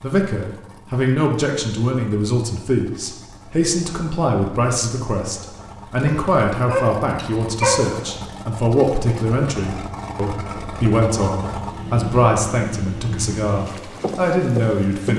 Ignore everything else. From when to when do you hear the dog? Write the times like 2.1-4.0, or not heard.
6.0-8.3.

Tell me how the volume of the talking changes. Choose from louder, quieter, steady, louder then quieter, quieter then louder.
steady.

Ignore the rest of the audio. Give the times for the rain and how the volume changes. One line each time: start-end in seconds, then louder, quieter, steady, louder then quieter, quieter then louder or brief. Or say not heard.
not heard.